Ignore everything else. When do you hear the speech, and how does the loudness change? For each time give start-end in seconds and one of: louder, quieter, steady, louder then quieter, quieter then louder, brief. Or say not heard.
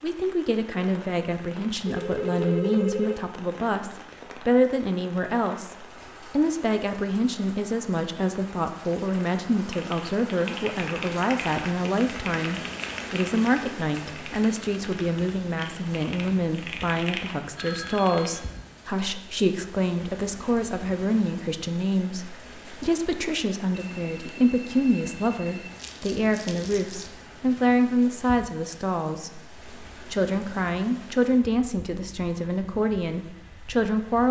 0.0-34.2 steady.